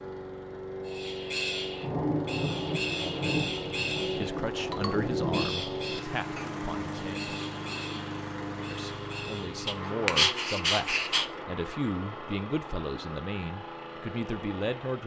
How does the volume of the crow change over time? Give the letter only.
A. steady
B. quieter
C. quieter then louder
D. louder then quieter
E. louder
B.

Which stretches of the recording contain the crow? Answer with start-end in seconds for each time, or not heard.
0.8-9.6.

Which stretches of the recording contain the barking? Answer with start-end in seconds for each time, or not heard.
9.7-11.3.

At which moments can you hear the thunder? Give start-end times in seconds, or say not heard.
1.8-5.5.